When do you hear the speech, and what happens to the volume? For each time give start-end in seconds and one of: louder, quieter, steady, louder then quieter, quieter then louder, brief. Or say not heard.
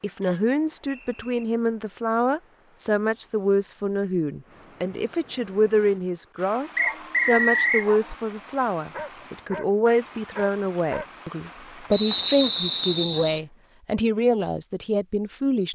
0.0-15.7 steady.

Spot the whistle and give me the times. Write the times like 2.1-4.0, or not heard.
0.2-1.4, 6.8-7.9, 11.9-13.4.